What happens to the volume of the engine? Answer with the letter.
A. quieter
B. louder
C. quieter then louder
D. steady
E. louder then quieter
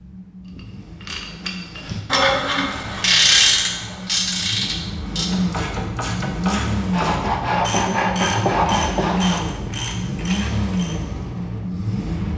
B.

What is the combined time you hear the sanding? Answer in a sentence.
The sanding can be heard for 3 seconds in total.